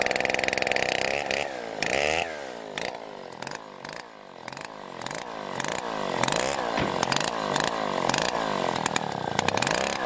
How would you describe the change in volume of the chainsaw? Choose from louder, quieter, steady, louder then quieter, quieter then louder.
quieter then louder.